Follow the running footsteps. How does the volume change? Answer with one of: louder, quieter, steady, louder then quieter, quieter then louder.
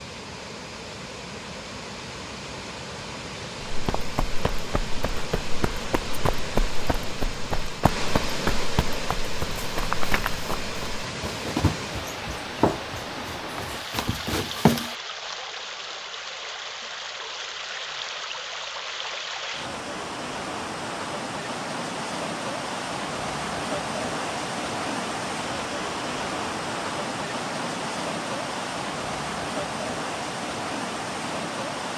louder.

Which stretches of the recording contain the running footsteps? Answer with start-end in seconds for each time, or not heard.
3.6-14.9.